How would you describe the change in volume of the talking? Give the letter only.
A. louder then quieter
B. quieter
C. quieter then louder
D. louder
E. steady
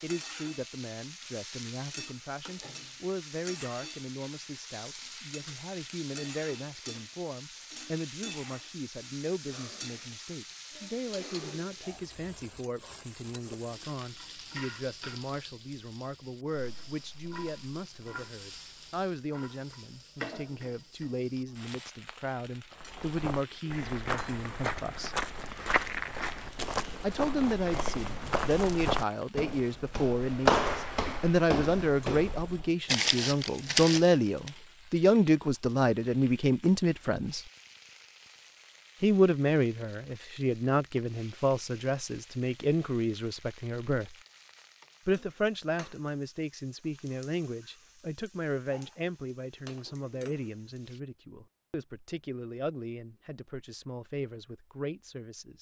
A.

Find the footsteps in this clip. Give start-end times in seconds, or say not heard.
22.7-34.5.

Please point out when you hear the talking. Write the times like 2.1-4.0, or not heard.
0.0-25.2, 27.0-37.5, 39.0-44.1, 45.0-55.5.